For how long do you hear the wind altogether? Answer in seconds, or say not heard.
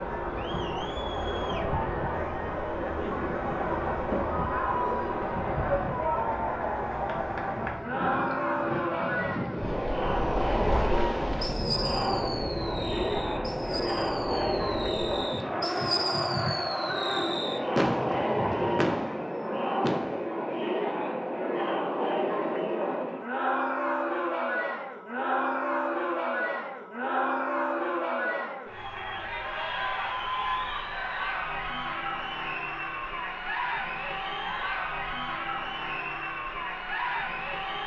19 s.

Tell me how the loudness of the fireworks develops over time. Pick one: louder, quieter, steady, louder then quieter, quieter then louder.
louder.